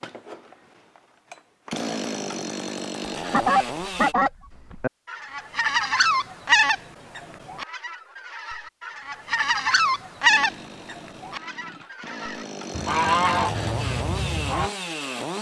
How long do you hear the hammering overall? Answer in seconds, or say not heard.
not heard.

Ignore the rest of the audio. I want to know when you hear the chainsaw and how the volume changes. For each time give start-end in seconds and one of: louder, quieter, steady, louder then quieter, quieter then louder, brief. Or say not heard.
0.0-4.2 louder
10.2-15.3 louder.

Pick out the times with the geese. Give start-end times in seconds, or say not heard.
3.3-14.7.